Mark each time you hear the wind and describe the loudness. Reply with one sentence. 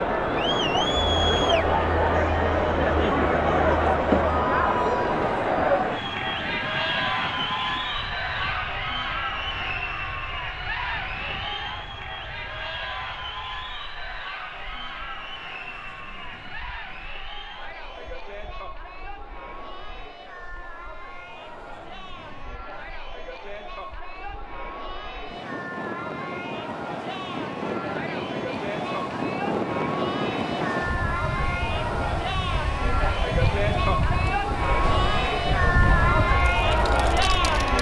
You can hear the wind from 0.0 to 37.7 s, getting quieter then louder.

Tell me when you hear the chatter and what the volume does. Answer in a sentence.
The chatter can be heard from 0.0 to 37.7 s, getting quieter then louder.